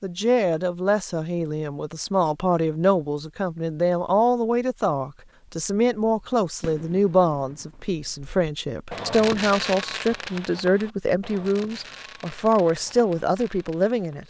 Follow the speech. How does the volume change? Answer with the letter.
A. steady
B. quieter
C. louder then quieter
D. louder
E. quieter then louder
A.